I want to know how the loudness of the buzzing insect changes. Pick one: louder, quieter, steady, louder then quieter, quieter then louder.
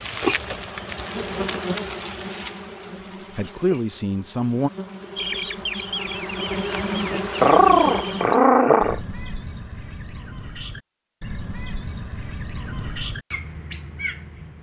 quieter then louder.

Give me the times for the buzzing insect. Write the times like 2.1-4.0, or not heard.
0.0-8.4.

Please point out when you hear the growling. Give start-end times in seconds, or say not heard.
7.4-9.0.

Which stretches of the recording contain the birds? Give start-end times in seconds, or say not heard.
5.2-14.5.